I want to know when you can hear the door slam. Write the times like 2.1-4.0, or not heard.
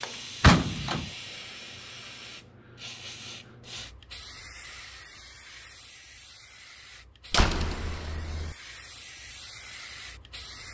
0.4-1.1, 7.3-8.6.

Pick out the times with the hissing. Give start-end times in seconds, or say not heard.
0.0-10.6.